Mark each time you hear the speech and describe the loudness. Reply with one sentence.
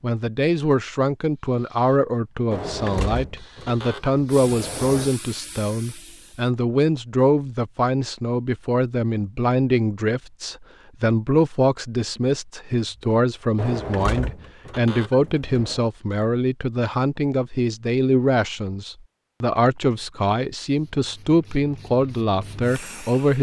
The speech can be heard from 0.0 to 23.3 s, at a steady volume.